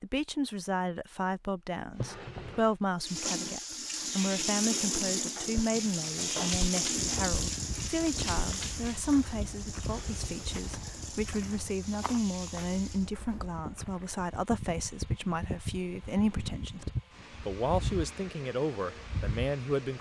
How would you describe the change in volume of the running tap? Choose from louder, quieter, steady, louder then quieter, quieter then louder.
quieter.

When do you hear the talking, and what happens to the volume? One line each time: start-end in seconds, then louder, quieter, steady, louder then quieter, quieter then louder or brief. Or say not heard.
0.0-19.9 steady.